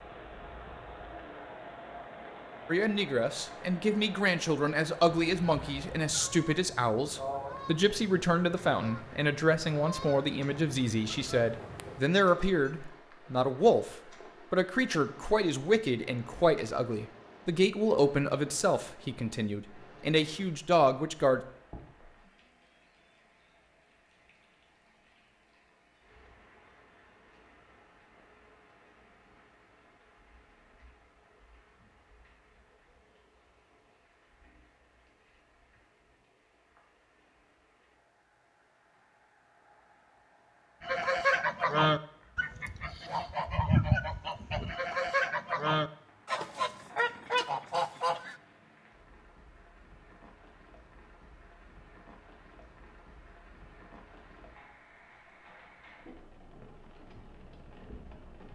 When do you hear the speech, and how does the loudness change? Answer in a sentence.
The speech can be heard from 2.6 to 21.4 s, at a steady volume.